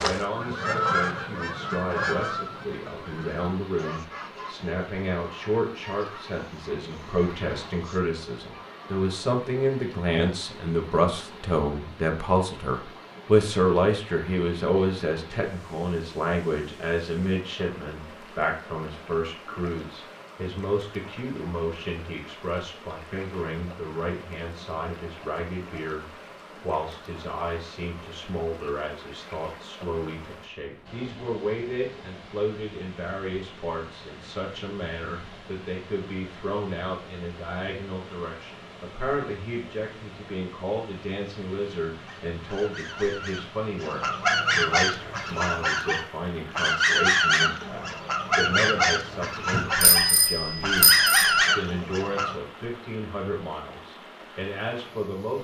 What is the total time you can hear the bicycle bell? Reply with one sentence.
The bicycle bell can be heard for 2 seconds in total.